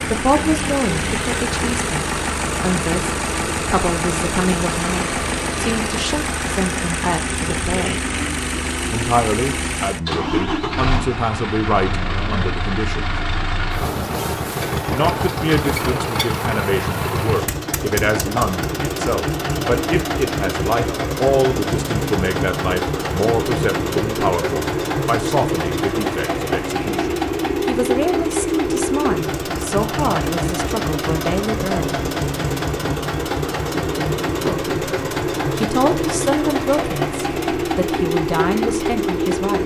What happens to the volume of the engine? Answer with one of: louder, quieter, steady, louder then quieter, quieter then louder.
steady.